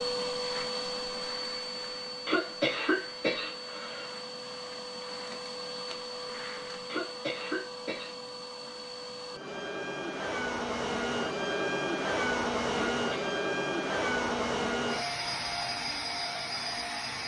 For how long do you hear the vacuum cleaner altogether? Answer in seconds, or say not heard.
17 s.